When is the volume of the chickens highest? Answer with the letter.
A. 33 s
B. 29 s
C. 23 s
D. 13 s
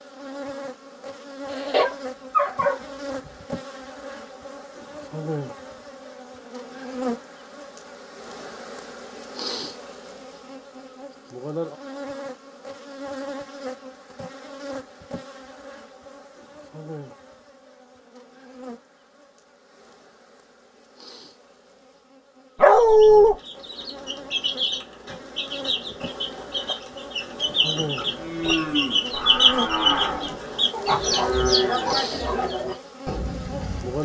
B.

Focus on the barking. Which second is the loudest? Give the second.
23 s.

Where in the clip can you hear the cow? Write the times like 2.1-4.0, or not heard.
28.1-34.0.